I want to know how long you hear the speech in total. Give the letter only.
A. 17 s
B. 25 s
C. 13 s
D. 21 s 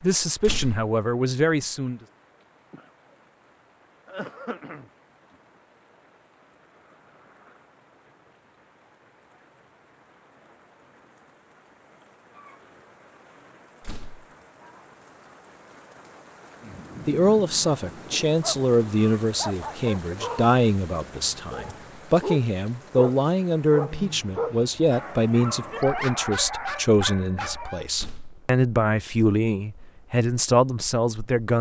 A.